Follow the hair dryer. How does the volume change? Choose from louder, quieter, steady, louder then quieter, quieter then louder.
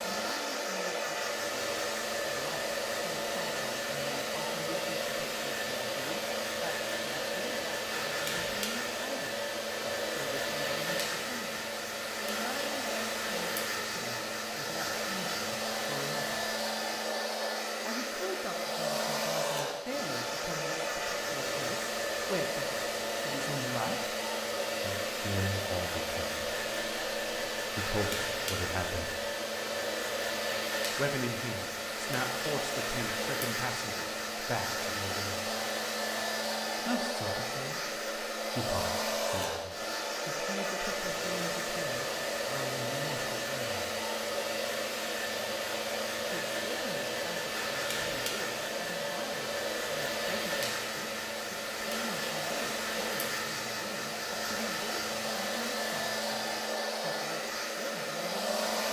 steady.